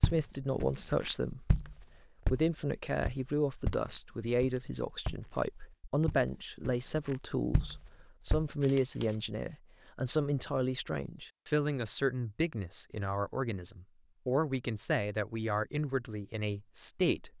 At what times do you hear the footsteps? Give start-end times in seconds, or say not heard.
0.0-8.4.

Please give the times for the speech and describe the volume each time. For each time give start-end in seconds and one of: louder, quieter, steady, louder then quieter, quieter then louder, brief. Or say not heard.
0.0-1.7 brief
2.3-17.3 steady.